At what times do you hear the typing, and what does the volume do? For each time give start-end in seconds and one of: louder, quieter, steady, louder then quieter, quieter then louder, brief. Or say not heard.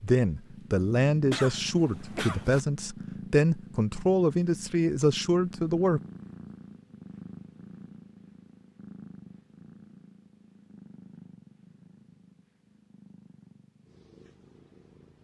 not heard.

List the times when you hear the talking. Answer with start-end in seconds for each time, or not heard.
0.0-6.0.